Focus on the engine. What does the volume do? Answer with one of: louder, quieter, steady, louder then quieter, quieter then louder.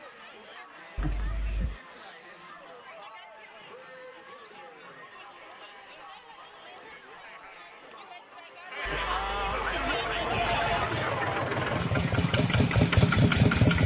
louder.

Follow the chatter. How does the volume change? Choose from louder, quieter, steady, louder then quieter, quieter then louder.
louder.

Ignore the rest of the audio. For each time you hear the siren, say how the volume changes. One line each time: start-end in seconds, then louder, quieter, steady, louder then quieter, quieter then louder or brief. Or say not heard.
not heard.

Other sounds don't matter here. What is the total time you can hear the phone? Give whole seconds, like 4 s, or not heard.
3 s.